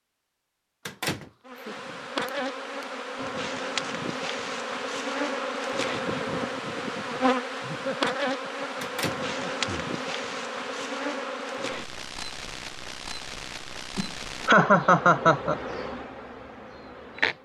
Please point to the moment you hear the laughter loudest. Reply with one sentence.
The loudest moment of the laughter is at 15 seconds.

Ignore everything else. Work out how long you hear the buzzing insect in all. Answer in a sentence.
The buzzing insect can be heard for 16 seconds in total.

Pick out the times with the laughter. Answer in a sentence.
You can hear the laughter from 1.2 to 2.9 s, from 7.6 to 9.7 s and from 13.9 to 15.6 s.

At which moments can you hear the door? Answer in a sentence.
You can hear the door from 0.8 to 1.3 s and from 8.8 to 9.8 s.